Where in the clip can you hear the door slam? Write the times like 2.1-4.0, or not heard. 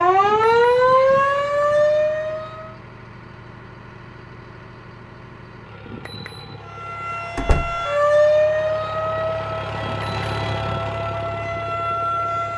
7.3-7.8.